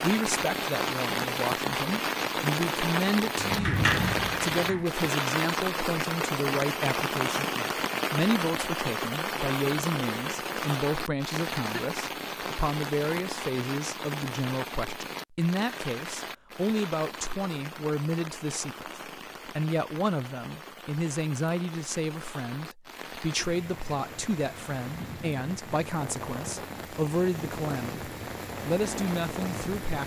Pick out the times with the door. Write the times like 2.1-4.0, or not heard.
3.4-4.8.